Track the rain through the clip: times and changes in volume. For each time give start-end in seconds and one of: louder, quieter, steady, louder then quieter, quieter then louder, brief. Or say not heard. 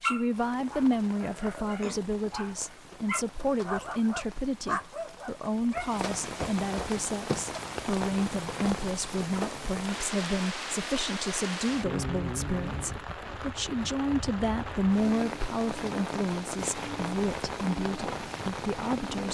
0.0-19.2 louder.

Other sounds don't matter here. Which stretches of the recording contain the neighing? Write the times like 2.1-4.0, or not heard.
not heard.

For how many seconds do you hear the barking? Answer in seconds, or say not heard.
6 s.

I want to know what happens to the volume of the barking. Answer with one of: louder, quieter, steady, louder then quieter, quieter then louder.
louder.